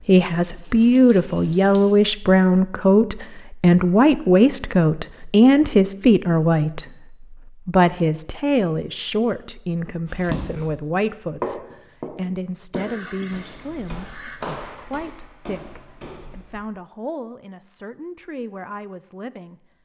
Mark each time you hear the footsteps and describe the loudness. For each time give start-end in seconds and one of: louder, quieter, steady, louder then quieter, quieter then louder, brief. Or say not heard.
10.1-10.7 brief
11.4-16.6 quieter.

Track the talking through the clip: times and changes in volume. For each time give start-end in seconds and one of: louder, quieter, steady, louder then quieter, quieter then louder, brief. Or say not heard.
0.1-19.7 quieter.